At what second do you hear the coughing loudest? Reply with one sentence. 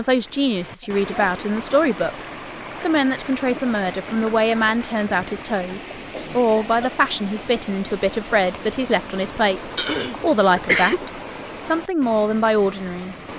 The volume of the coughing peaks at 11 seconds.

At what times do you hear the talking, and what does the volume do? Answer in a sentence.
You can hear the talking from 0.0 to 13.2 s, at a steady volume.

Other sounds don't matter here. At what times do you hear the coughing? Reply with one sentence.
You can hear the coughing from 0.8 to 1.4 s, from 6.1 to 6.8 s and from 9.8 to 11.0 s.